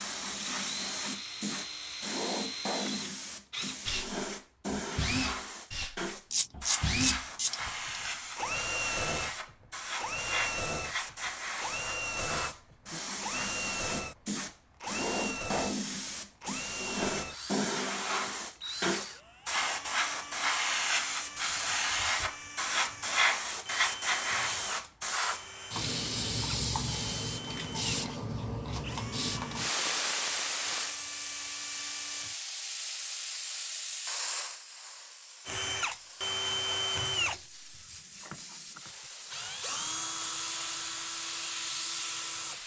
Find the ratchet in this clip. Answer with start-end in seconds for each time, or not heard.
6.3-8.1.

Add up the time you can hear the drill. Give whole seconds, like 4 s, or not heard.
39 s.